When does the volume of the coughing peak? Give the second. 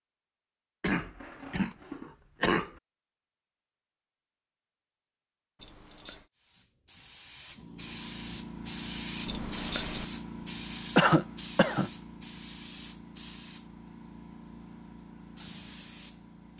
11 s.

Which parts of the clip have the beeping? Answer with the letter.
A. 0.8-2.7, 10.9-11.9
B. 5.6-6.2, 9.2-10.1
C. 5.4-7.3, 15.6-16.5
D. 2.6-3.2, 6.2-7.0
B.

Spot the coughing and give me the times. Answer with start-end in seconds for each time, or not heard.
0.8-2.7, 10.9-11.9.